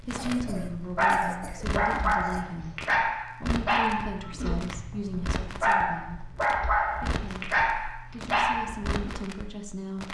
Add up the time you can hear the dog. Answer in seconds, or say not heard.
9 s.